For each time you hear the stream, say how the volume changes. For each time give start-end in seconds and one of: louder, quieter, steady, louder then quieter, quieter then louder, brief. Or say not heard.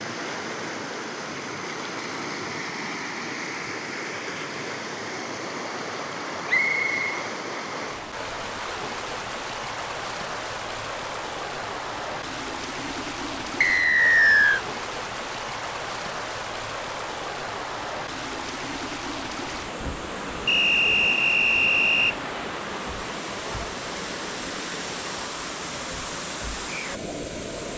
0.0-27.7 steady.